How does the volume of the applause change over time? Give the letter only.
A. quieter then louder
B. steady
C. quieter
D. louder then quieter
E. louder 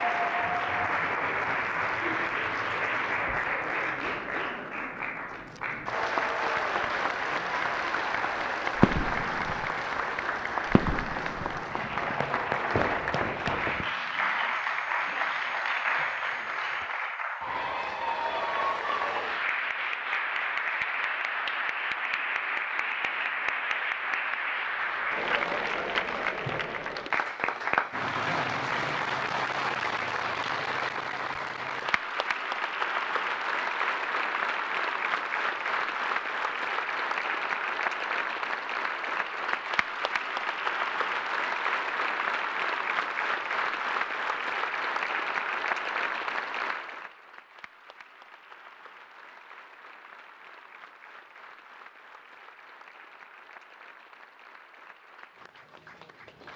C.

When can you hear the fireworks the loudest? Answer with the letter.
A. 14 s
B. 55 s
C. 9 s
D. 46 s
C.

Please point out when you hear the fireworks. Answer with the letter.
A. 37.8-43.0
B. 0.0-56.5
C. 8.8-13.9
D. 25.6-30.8
C.